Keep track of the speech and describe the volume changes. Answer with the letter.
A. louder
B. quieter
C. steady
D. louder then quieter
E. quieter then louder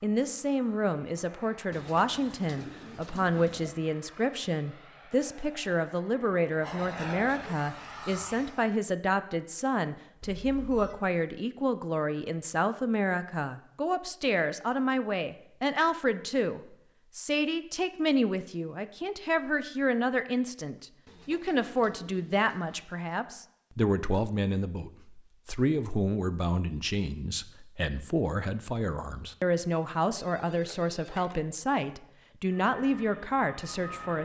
C.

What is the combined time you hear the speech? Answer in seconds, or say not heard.
34 s.